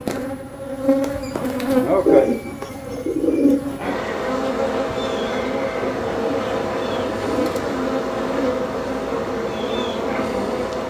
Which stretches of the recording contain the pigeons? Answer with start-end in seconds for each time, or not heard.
2.0-3.6, 5.8-7.8.